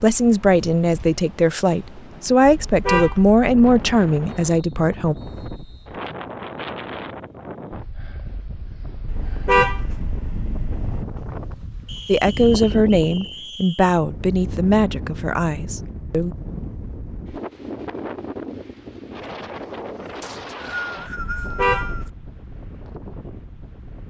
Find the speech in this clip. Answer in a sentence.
You can hear the speech from 0.0 to 5.2 s and from 12.1 to 16.4 s.